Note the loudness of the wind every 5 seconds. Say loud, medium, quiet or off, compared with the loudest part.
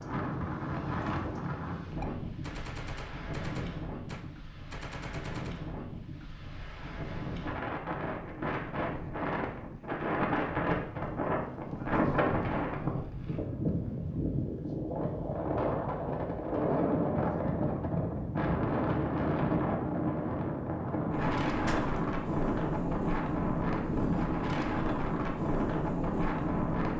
medium, medium, loud, loud, loud, loud.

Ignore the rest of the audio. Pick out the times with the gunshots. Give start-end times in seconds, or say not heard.
2.0-5.6, 21.4-22.1.